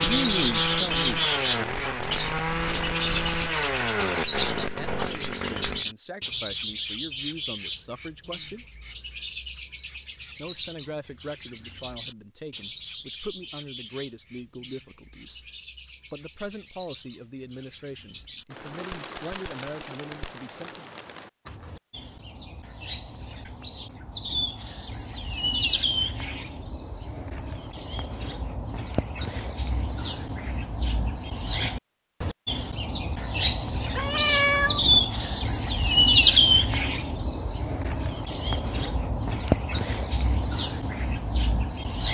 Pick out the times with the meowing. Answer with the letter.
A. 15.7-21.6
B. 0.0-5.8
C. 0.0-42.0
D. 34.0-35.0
D.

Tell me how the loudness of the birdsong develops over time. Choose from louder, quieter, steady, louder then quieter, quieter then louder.
quieter then louder.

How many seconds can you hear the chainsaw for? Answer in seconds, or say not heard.
6 s.